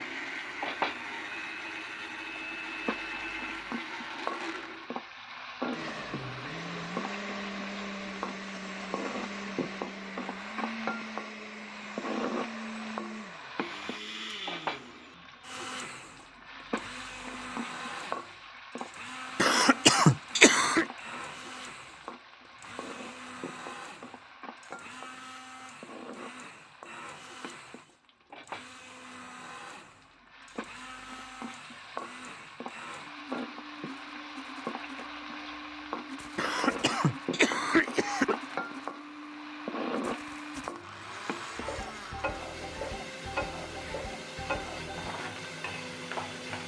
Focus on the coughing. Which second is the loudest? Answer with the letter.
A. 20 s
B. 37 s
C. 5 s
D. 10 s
A.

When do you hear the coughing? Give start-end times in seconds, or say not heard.
19.4-20.9, 36.4-38.4.